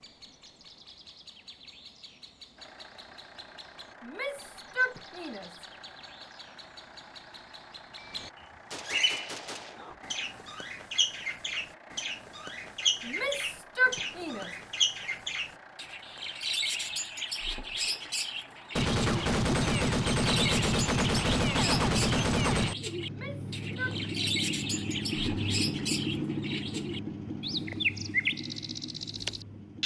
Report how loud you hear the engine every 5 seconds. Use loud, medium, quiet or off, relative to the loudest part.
quiet, quiet, quiet, quiet, loud, loud.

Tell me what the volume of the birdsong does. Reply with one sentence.
The loudness of the birdsong goes up.